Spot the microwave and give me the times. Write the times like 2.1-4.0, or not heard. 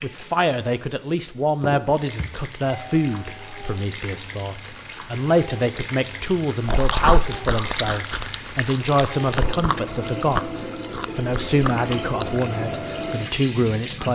not heard.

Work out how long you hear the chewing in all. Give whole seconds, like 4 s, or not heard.
6 s.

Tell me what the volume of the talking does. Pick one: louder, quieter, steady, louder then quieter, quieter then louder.
steady.